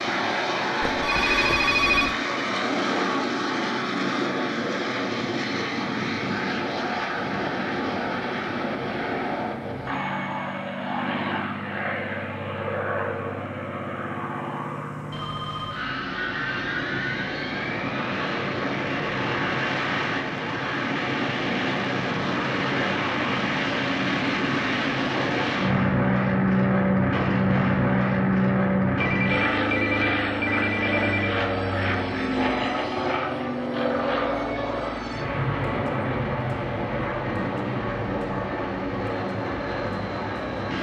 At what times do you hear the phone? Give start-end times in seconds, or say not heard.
0.8-2.1, 15.1-15.8, 29.0-31.4.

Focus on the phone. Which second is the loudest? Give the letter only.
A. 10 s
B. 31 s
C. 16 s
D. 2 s
D.